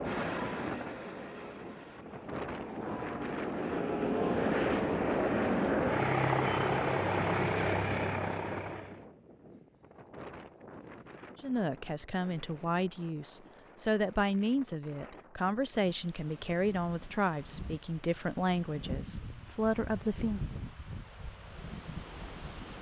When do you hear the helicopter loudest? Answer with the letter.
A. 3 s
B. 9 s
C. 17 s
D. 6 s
D.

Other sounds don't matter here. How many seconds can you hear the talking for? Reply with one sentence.
You can hear the talking for 9 seconds altogether.